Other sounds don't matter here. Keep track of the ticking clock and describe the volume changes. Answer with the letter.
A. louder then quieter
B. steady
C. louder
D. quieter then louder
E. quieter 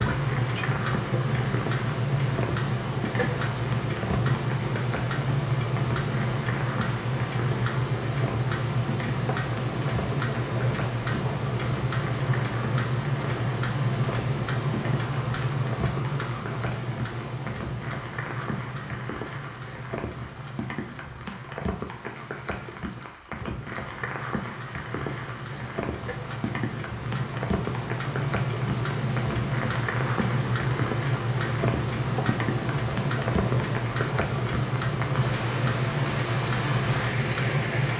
D.